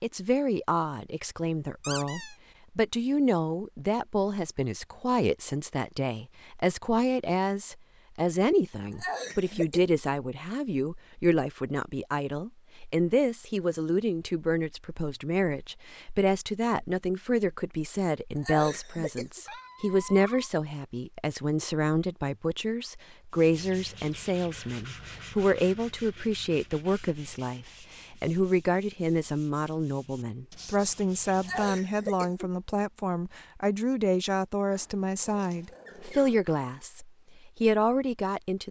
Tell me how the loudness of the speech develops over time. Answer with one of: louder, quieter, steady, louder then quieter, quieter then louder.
steady.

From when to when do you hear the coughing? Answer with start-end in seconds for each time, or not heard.
8.9-9.8, 18.4-19.4, 31.4-32.5.